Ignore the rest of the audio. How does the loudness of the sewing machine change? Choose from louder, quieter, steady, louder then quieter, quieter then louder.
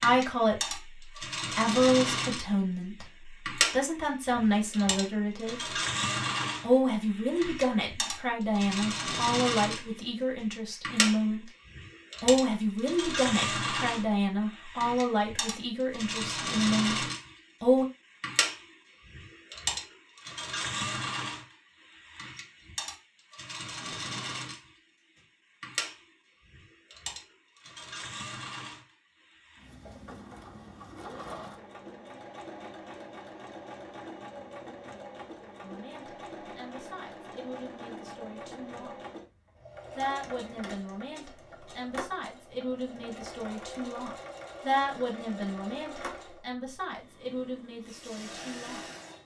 quieter.